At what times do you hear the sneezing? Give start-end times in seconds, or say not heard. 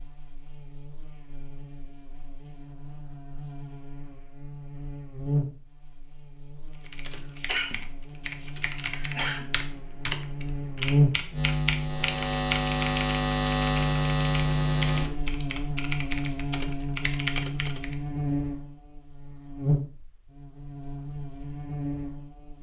7.3-9.4.